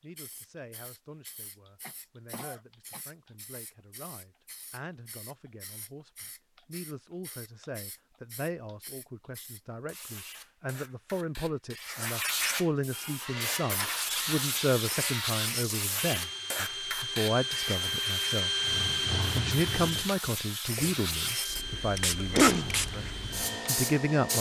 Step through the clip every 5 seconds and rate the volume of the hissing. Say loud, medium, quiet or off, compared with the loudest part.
quiet, quiet, loud, loud, loud.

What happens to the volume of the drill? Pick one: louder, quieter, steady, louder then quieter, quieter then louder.
louder then quieter.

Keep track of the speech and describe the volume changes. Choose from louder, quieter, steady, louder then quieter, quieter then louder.
louder.